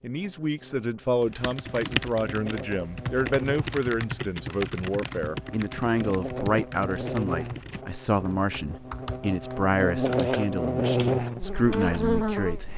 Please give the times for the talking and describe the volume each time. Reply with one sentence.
You can hear the talking from 0.0 to 12.7 s, at a steady volume.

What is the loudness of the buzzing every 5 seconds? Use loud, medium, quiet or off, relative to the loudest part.
quiet, medium, loud.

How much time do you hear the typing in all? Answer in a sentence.
You can hear the typing for 11 seconds altogether.